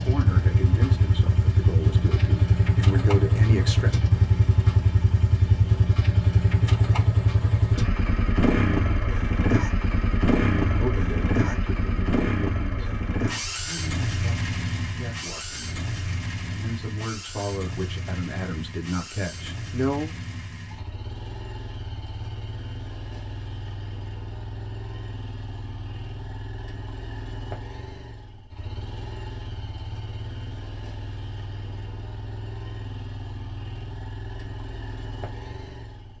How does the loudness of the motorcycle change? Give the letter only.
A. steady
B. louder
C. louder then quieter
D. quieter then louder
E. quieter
E.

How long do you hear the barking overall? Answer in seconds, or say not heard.
not heard.